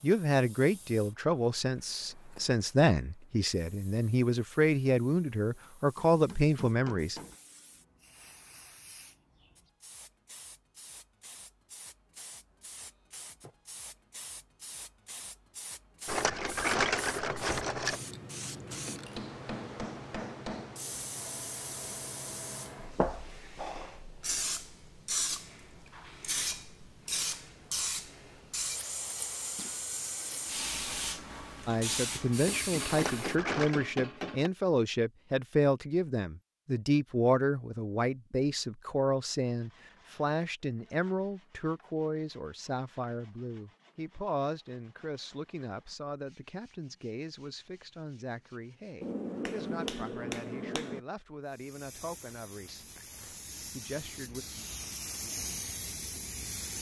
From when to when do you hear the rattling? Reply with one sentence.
You can hear the rattling from 16.1 to 18.0 s and from 32.9 to 33.9 s.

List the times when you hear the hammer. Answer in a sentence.
You can hear the hammer from 6.0 to 7.3 s, from 18.9 to 20.8 s, from 32.5 to 34.5 s and from 49.0 to 51.0 s.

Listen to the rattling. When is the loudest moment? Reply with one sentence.
The volume of the rattling peaks at 17 seconds.